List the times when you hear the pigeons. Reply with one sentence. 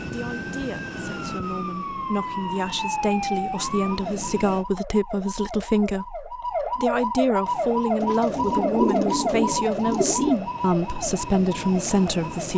You can hear the pigeons from 8.0 to 10.4 s.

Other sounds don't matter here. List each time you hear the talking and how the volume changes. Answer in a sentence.
You can hear the talking from 0.1 to 12.5 s, getting louder.